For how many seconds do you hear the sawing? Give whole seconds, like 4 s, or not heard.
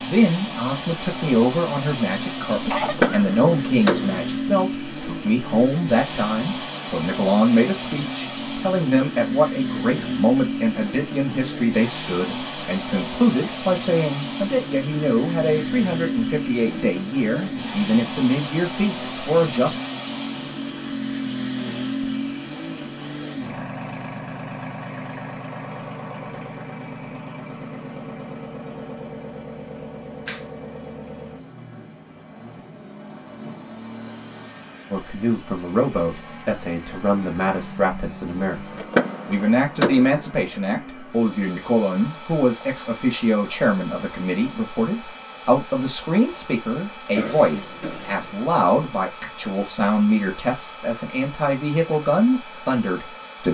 not heard.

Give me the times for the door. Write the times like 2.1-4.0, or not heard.
2.8-4.2, 38.8-40.2.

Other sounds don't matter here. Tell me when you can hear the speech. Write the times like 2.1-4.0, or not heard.
0.0-19.8, 34.9-53.4.